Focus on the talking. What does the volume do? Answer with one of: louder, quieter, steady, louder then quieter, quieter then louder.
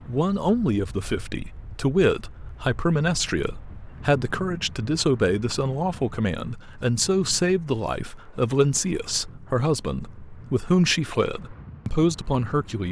steady.